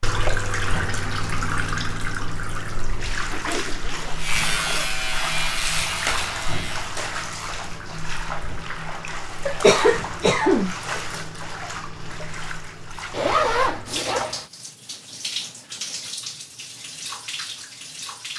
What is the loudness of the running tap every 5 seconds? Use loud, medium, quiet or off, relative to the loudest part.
loud, loud, medium, medium.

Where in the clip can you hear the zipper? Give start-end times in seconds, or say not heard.
3.1-4.9, 13.1-14.4.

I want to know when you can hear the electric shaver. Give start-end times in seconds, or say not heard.
4.2-7.0.